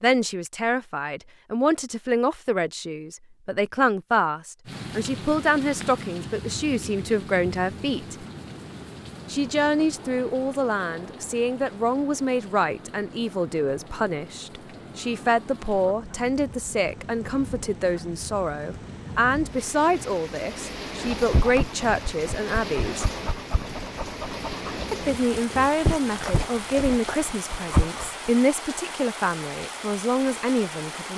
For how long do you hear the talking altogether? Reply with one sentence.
You can hear the talking for 28 seconds altogether.